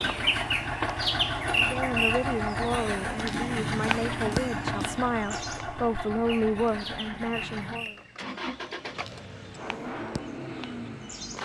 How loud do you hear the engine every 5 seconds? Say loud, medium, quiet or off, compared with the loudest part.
loud, medium, medium.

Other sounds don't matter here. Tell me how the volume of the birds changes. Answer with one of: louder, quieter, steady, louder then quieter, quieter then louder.
quieter.